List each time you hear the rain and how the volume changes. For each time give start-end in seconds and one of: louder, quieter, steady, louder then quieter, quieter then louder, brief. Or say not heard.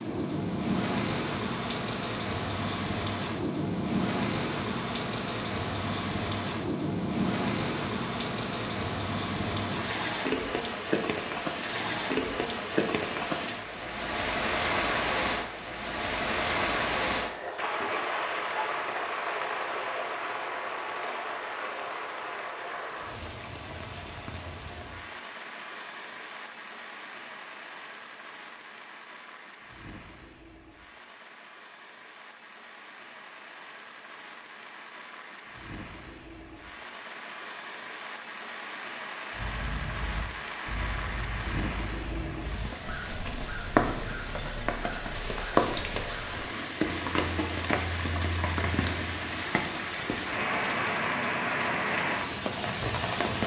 0.0-53.4 quieter then louder.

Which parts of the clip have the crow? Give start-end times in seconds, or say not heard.
39.3-46.5.